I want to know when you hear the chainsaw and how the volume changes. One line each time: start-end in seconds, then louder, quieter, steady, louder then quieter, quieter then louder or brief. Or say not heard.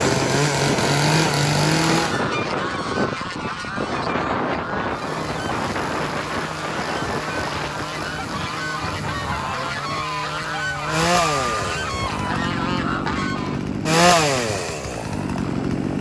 0.0-2.2 brief
4.9-15.9 louder.